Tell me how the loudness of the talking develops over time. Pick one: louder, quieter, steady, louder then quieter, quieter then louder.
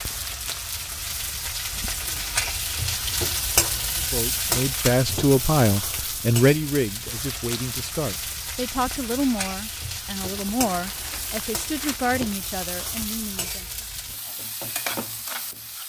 quieter.